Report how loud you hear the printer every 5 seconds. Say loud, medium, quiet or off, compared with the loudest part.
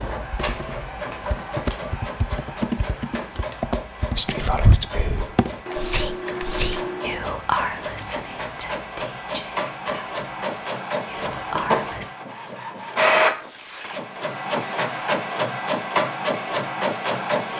medium, medium, loud, loud.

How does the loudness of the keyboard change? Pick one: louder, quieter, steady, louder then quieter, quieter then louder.
steady.